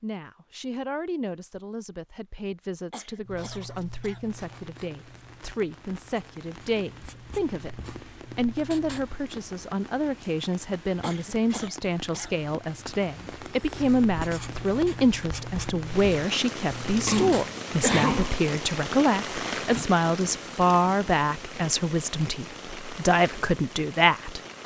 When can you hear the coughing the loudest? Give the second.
18 s.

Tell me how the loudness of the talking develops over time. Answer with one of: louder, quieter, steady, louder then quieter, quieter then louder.
louder.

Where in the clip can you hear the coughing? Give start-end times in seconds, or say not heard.
2.9-4.3, 11.0-12.4, 17.1-18.4.